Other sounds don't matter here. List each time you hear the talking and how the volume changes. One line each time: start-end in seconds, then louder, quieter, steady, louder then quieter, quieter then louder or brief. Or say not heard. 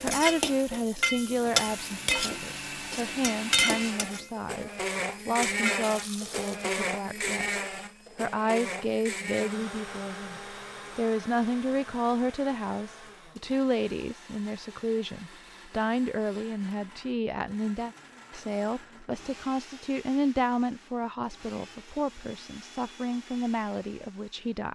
0.0-24.7 steady.